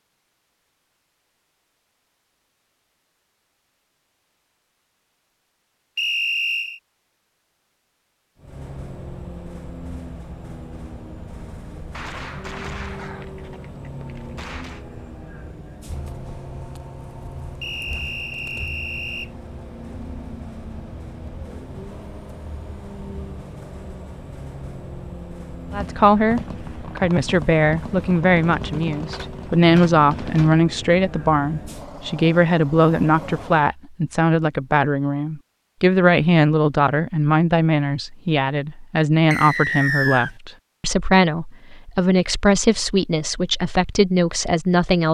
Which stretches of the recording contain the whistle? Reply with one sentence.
The whistle can be heard from 6.0 to 6.8 s, from 17.6 to 19.3 s and from 39.3 to 40.3 s.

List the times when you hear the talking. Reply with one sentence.
You can hear the talking from 25.7 to 45.0 s.